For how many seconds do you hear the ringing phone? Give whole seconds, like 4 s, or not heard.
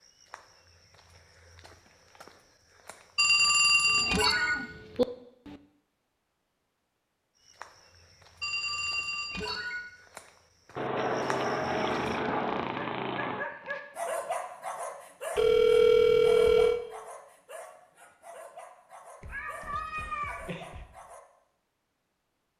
4 s.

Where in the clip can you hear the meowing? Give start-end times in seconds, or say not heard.
3.9-5.6, 10.8-13.4, 19.2-20.9.